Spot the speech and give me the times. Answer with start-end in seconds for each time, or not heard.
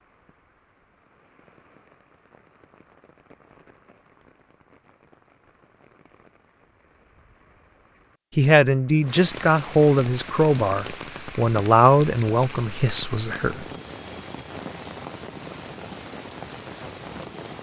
8.3-13.7.